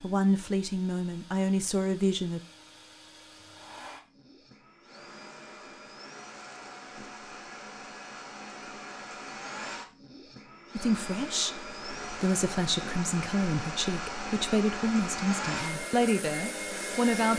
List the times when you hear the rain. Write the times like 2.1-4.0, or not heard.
not heard.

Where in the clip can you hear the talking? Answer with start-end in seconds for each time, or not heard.
0.0-2.4, 10.8-17.3.